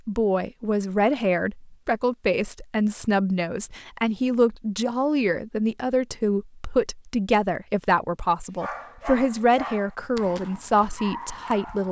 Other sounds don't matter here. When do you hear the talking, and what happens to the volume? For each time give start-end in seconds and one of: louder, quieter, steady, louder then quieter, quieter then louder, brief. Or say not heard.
0.1-11.8 steady.